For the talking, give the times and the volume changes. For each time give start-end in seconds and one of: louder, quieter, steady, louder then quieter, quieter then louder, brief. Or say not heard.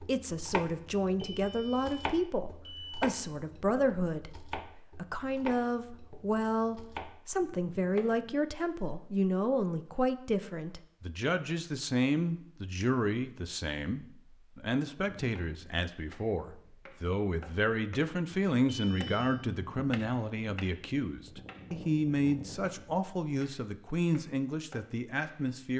0.0-25.7 steady.